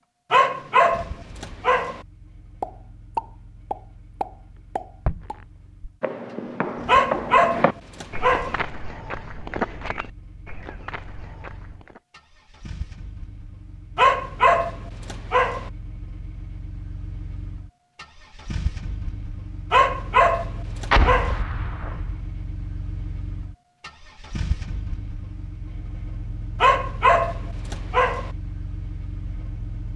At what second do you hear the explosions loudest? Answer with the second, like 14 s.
21 s.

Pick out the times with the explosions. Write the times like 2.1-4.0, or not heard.
2.6-5.3, 20.9-22.1.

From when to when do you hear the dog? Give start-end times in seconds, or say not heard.
0.3-2.0, 6.8-8.6, 13.9-15.7, 19.7-21.4, 26.6-28.3.